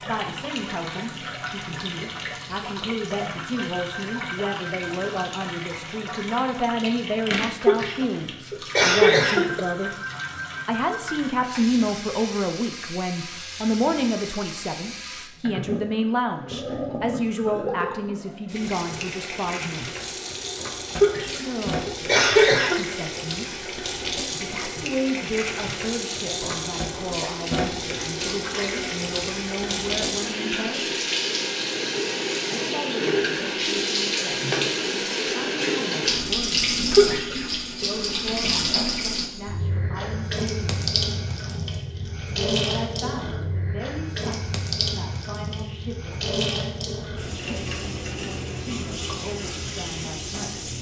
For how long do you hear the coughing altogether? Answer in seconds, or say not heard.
5 s.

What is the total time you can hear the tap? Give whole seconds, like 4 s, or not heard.
51 s.